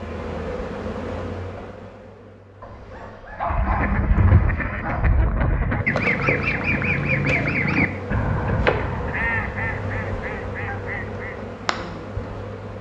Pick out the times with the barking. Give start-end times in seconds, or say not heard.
2.6-5.0.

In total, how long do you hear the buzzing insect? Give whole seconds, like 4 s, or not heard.
10 s.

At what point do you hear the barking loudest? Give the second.
4 s.